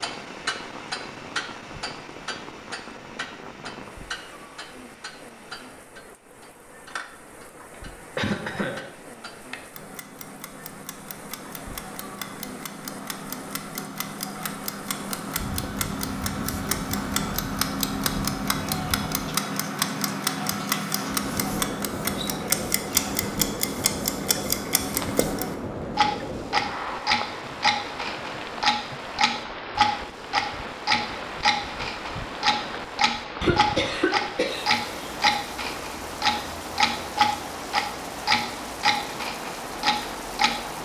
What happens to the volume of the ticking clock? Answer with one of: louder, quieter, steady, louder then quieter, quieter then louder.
louder.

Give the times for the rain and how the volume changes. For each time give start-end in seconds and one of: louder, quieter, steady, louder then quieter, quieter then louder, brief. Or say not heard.
0.0-40.8 louder.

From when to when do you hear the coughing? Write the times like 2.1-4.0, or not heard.
8.2-8.9, 33.4-35.2.